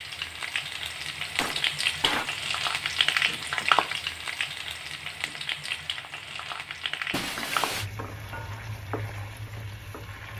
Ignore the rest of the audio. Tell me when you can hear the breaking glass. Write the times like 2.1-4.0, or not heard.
1.4-2.3, 7.1-7.9.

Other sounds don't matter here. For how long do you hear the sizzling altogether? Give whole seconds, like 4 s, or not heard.
10 s.